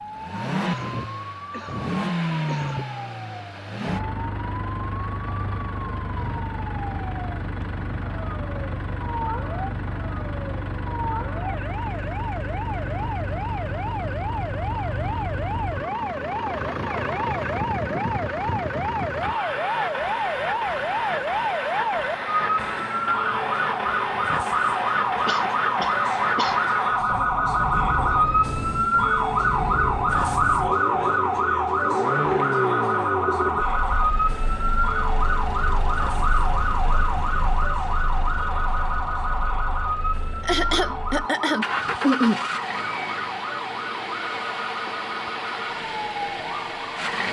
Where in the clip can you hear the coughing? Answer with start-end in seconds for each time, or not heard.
0.6-2.9, 25.2-26.6, 40.4-42.5.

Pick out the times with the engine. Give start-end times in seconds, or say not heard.
0.0-47.2.